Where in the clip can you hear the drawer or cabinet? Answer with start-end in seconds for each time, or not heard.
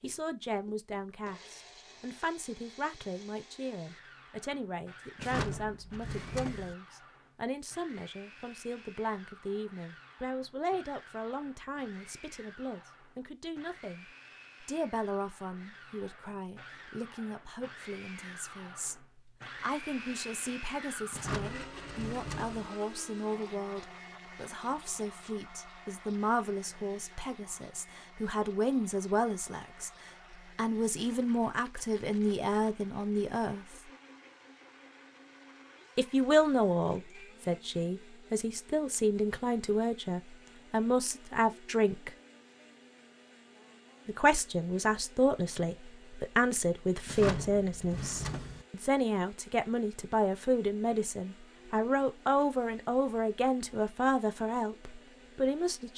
5.2-6.8, 21.1-22.7, 47.0-48.6.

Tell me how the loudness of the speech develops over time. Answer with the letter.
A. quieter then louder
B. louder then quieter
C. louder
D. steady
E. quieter
C.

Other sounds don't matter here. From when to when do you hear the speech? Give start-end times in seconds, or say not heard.
0.0-33.6, 36.0-42.1, 44.0-55.9.